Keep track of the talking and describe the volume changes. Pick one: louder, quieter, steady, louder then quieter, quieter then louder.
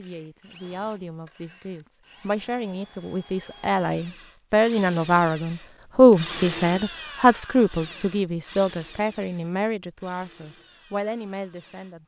louder then quieter.